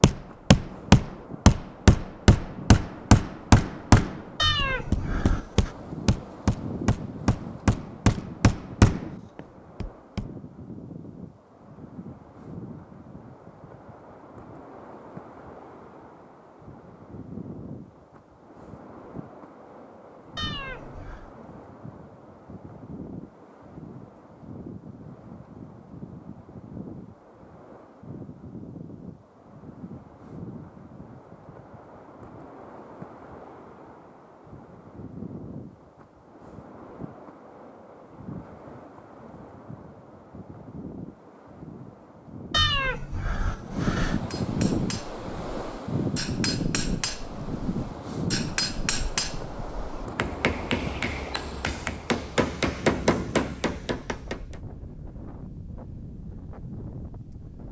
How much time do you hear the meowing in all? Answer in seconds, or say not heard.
4 s.